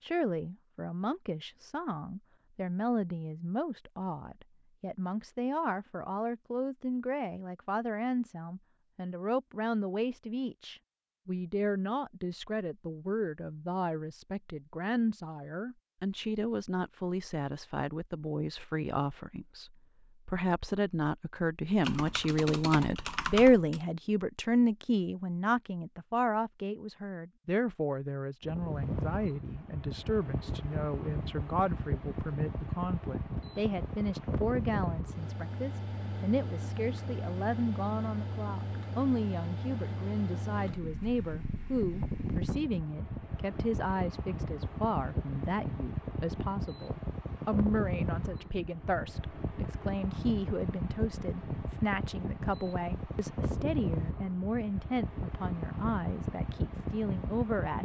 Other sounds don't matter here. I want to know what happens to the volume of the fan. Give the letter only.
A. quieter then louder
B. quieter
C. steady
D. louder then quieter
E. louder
C.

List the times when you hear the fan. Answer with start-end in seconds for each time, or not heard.
28.4-57.8.